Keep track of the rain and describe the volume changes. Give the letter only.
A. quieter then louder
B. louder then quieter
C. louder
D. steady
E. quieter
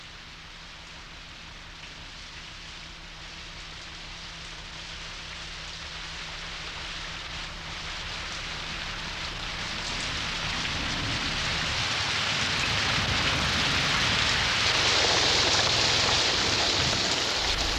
C.